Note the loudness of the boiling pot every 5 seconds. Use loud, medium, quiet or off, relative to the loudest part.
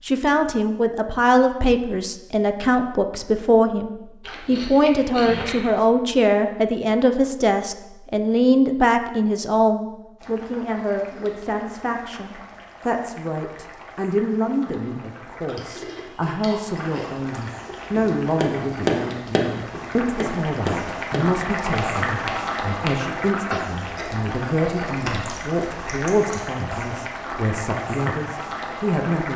off, off, quiet, medium, loud, loud.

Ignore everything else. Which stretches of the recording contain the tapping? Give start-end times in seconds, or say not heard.
17.9-23.6.